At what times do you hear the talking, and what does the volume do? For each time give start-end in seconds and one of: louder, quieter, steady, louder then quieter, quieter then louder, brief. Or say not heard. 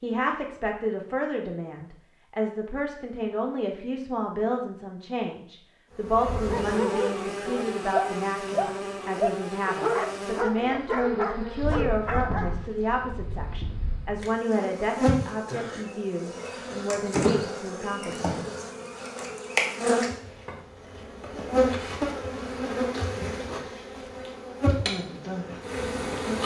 0.0-18.3 steady.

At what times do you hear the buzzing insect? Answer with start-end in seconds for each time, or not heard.
6.0-26.4.